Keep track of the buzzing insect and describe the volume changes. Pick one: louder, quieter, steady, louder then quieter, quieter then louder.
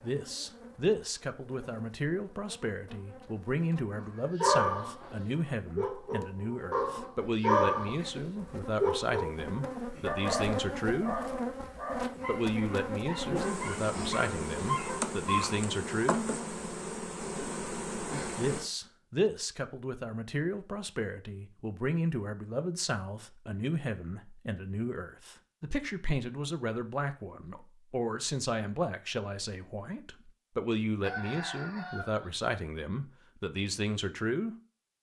louder.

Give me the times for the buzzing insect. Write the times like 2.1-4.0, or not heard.
0.0-18.6.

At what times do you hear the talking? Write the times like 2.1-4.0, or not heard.
0.0-11.2, 12.2-16.2, 18.4-34.5.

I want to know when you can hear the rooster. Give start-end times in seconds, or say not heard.
4.0-5.3, 31.0-32.3.